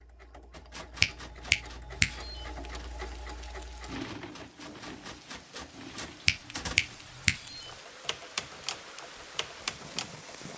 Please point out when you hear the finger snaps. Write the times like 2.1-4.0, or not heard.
1.0-2.5, 6.2-7.7.